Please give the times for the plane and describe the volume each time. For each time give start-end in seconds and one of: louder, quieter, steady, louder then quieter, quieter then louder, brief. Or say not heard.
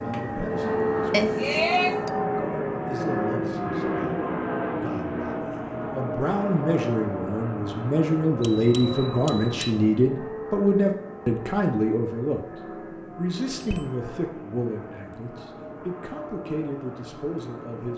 0.0-17.9 quieter.